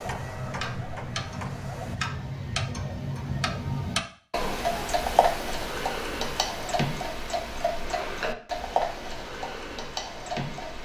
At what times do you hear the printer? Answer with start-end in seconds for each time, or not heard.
0.0-1.9.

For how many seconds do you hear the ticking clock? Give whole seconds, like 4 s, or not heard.
11 s.